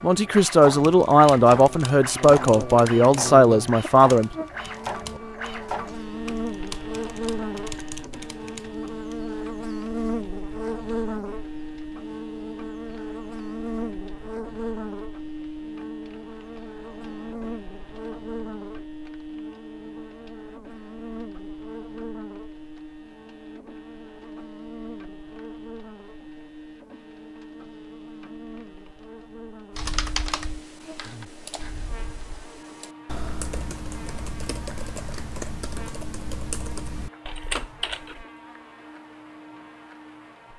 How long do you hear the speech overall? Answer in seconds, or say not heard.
4 s.